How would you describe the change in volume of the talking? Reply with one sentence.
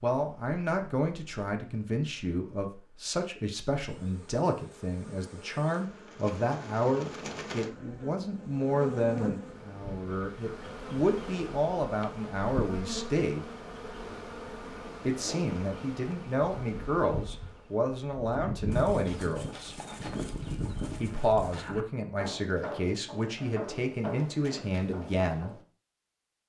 The volume of the talking stays about the same.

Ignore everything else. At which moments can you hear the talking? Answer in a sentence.
The talking can be heard from 0.0 to 13.4 s, from 15.0 to 19.8 s and from 21.0 to 25.6 s.